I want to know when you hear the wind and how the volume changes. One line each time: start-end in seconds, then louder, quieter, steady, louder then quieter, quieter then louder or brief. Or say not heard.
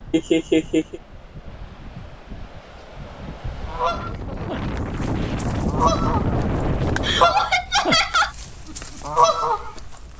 0.0-7.5 louder.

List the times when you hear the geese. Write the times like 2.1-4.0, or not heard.
3.6-10.1.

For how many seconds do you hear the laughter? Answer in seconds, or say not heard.
2 s.